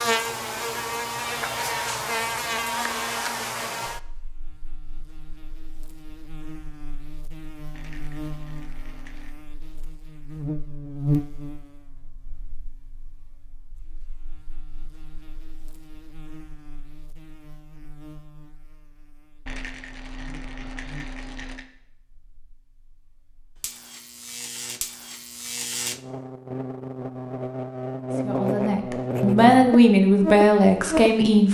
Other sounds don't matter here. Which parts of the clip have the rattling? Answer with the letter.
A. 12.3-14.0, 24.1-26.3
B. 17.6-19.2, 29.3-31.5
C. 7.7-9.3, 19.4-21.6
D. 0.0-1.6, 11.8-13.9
C.